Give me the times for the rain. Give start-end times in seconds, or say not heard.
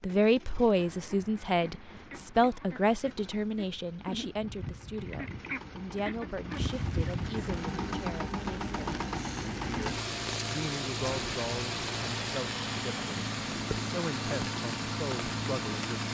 6.5-16.0.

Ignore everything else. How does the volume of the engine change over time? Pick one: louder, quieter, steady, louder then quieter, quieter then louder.
louder.